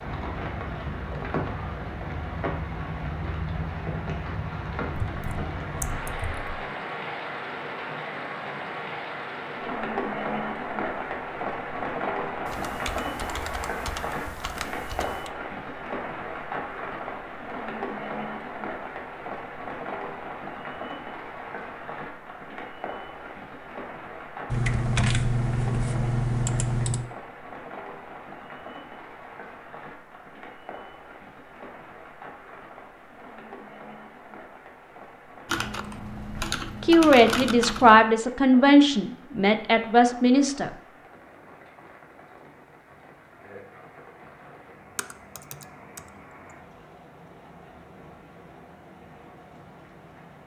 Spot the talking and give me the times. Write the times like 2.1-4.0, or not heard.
36.8-40.7.